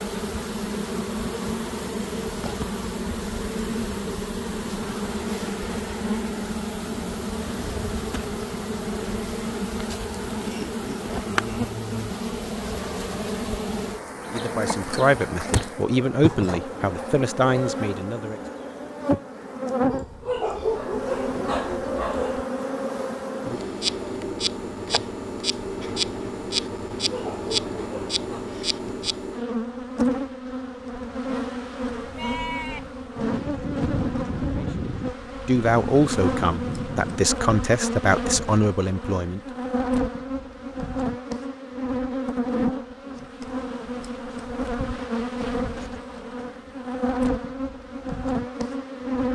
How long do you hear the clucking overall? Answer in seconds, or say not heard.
not heard.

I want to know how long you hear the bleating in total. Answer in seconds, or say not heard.
5 s.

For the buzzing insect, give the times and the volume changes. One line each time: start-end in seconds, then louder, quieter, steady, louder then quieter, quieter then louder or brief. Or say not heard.
0.0-49.2 steady.